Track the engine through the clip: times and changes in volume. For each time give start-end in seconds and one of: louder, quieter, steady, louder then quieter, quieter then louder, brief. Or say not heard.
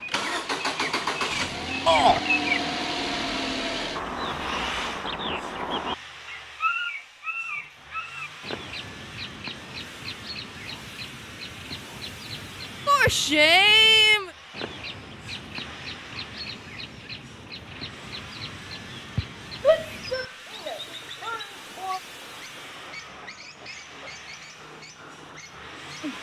0.0-26.1 quieter.